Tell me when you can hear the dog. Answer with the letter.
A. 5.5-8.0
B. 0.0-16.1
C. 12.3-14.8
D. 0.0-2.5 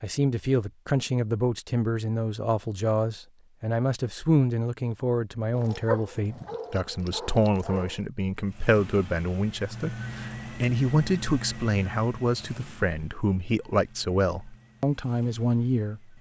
A.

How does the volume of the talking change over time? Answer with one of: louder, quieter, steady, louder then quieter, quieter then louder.
steady.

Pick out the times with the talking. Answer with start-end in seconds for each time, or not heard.
0.0-16.1.